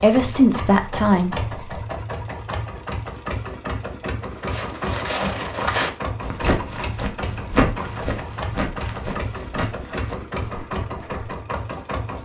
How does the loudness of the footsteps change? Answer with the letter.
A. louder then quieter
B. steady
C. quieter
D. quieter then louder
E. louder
C.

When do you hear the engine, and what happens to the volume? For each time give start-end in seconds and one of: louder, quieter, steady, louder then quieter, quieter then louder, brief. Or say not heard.
0.0-12.1 steady.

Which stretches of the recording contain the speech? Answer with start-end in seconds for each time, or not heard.
0.0-1.4.